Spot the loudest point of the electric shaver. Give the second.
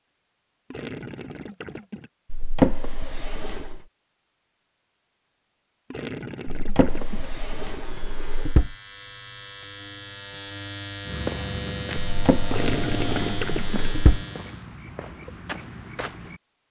13 s.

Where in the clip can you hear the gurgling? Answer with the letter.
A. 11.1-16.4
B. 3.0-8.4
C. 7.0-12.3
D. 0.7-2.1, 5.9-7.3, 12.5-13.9
D.